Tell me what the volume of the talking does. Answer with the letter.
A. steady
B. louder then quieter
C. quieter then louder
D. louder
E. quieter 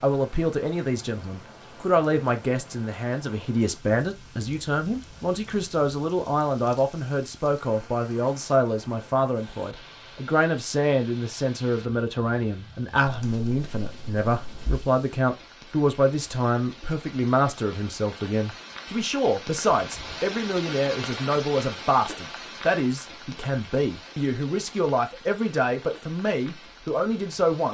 A.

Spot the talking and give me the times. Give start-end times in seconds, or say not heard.
0.0-27.6.